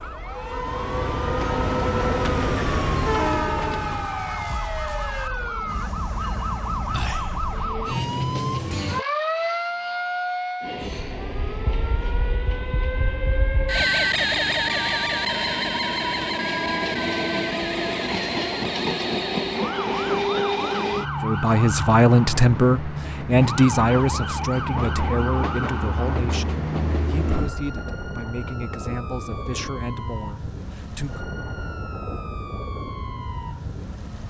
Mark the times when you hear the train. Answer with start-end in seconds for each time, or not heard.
0.0-8.0, 10.6-27.5.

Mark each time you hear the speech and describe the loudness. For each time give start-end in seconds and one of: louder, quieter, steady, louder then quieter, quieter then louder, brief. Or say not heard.
21.2-31.2 quieter.